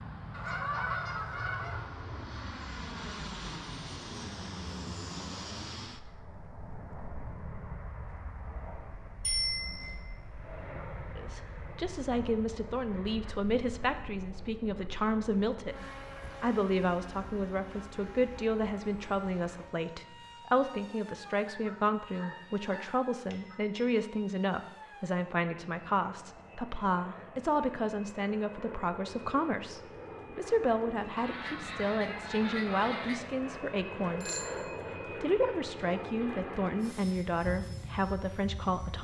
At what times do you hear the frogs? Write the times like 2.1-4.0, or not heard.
not heard.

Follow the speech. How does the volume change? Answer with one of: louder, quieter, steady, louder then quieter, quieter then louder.
steady.